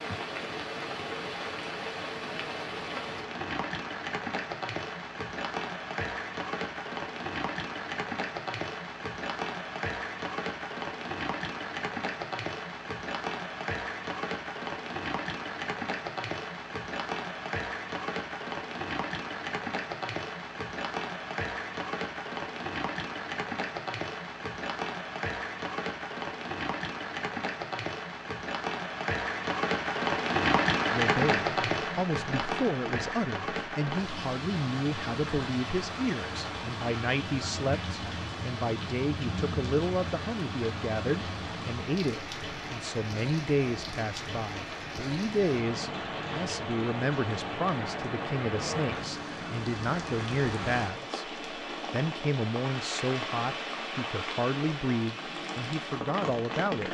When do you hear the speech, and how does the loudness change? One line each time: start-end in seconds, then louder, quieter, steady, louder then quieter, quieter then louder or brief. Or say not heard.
30.9-56.9 steady.